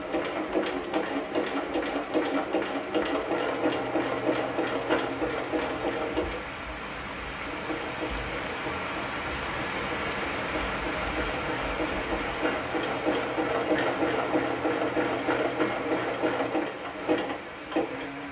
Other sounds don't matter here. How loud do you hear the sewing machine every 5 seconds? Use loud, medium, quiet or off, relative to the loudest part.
loud, medium, loud, loud.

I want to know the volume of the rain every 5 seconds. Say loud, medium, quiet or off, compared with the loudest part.
medium, loud, loud, medium.